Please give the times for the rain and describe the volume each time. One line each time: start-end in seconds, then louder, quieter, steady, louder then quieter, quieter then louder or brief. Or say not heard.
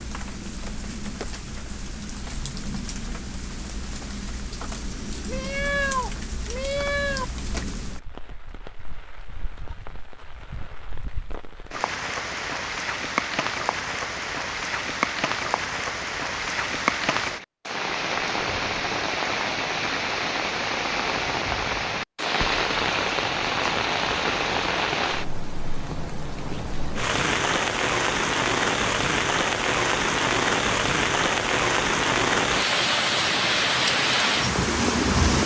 0.0-35.4 louder.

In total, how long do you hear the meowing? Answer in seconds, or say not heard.
2 s.